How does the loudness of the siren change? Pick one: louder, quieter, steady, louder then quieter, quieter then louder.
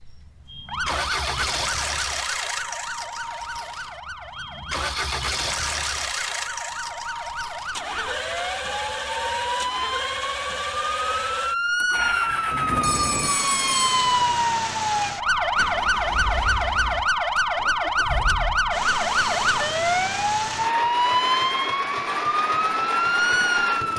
louder.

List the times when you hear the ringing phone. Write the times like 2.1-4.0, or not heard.
12.8-14.1.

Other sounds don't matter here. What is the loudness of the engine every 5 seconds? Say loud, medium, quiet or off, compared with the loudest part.
loud, loud, loud, medium, loud.